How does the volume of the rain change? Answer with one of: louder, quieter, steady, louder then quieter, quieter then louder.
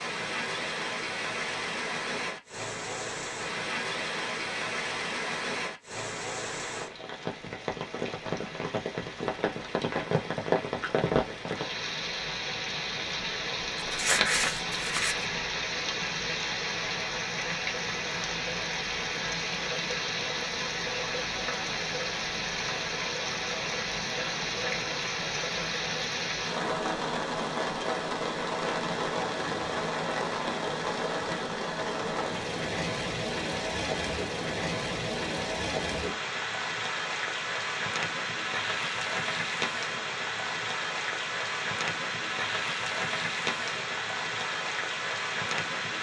steady.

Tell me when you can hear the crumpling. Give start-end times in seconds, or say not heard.
13.8-15.2.